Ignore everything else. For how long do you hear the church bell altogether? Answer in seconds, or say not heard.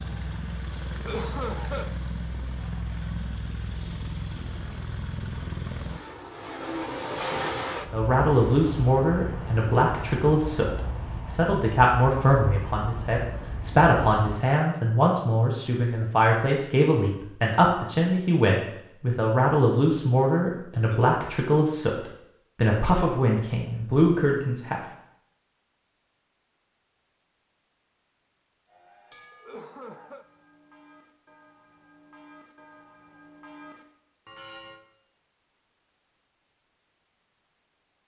6 s.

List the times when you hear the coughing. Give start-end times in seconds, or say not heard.
0.9-1.9, 20.7-21.1, 29.3-30.2.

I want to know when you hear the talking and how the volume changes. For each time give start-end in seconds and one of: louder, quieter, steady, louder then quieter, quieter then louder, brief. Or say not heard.
7.9-24.9 steady.